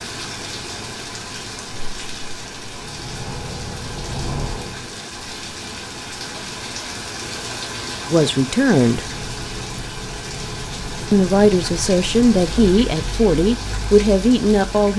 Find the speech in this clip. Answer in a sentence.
The speech can be heard from 8.1 to 9.1 s and from 11.1 to 14.9 s.